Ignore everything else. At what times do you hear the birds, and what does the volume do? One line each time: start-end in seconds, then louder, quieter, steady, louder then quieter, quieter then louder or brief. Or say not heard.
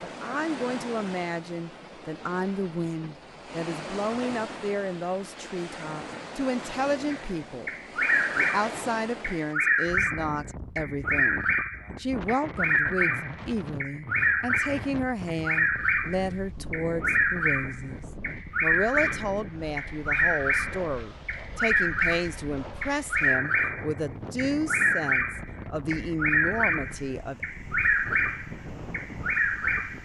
7.1-30.0 steady.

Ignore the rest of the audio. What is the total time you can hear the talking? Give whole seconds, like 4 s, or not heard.
27 s.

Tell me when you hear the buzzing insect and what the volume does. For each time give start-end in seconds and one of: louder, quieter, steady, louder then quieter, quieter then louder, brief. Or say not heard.
not heard.